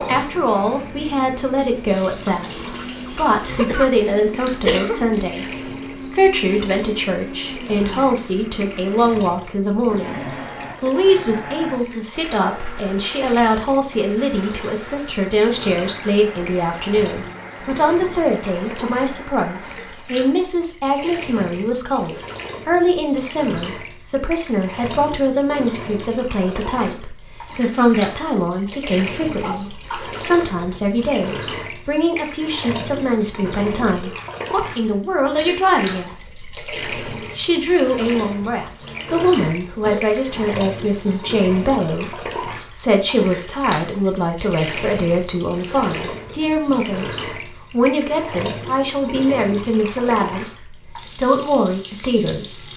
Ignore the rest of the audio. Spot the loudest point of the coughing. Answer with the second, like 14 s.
5 s.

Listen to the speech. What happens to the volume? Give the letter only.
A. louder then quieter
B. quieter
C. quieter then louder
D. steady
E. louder
D.